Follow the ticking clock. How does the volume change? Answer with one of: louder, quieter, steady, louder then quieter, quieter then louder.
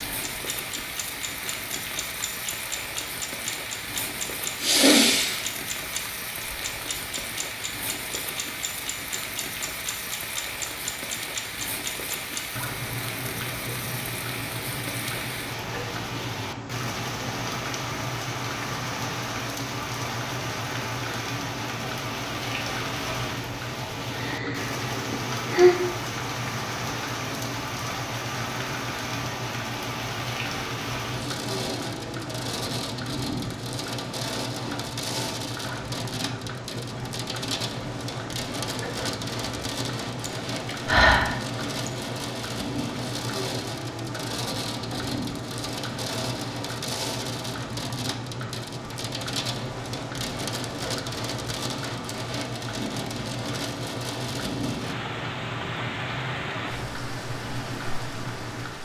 steady.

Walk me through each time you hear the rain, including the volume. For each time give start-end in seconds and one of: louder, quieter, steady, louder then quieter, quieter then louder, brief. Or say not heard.
0.0-58.8 steady.